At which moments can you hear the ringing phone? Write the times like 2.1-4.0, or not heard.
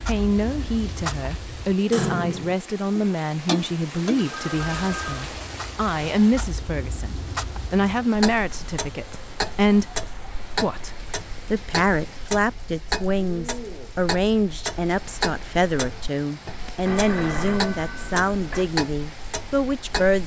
4.2-5.2, 16.9-18.7.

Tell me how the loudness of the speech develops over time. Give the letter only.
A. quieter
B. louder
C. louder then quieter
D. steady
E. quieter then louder
D.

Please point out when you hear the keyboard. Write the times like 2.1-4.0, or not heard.
not heard.